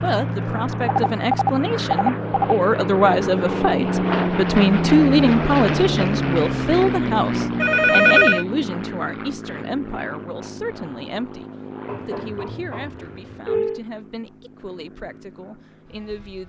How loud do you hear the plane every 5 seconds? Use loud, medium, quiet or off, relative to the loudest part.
loud, loud, quiet, quiet.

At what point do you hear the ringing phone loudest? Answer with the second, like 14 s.
8 s.